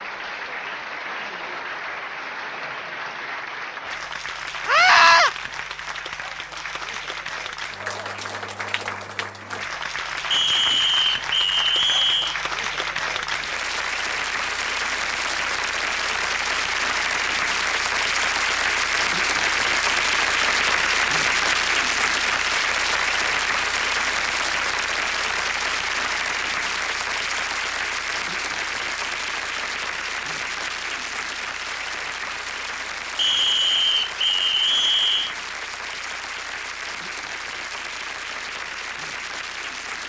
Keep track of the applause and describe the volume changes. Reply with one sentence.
The loudness of the applause goes up, then down.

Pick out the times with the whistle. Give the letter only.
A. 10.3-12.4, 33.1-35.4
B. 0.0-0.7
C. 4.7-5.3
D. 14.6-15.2
A.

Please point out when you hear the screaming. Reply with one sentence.
The screaming can be heard from 4.7 to 5.3 s.